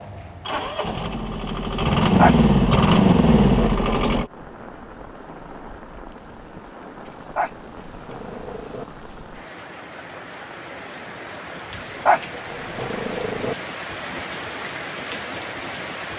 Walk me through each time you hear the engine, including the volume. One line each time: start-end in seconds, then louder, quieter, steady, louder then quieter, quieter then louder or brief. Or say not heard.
0.0-4.3 louder.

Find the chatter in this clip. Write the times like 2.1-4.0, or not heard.
not heard.